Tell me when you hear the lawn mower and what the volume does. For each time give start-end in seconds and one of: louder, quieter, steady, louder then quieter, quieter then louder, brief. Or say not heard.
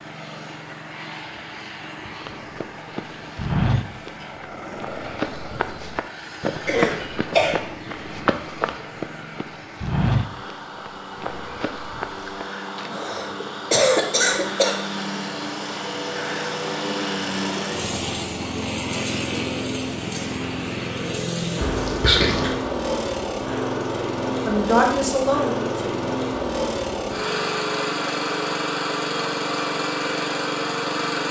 0.0-31.2 louder.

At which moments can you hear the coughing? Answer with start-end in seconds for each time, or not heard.
6.7-7.6, 12.9-14.8, 21.6-22.6.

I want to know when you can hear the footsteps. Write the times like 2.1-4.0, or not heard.
2.2-13.0.